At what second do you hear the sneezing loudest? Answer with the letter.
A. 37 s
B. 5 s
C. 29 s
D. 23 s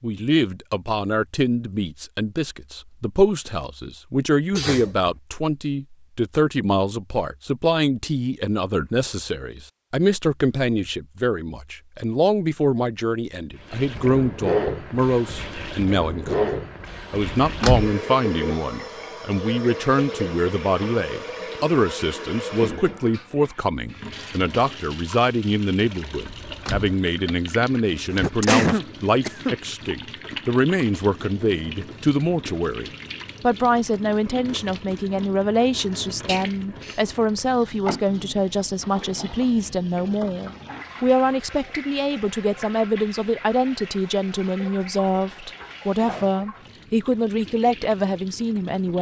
C.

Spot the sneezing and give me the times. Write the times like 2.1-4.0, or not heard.
4.5-5.1, 28.1-29.6, 36.2-37.0.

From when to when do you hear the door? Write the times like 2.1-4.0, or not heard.
17.3-17.9, 26.2-26.9.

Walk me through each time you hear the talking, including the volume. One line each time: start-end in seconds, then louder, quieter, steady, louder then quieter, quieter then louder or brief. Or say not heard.
0.0-48.9 steady.